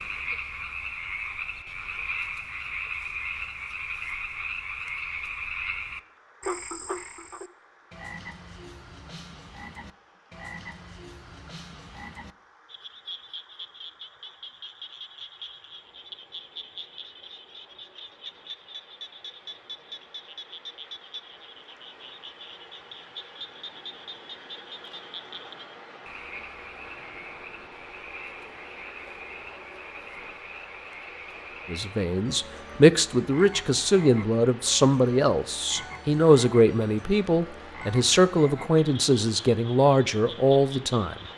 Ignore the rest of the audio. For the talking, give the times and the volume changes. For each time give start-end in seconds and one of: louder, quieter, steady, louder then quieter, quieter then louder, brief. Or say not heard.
31.7-41.1 steady.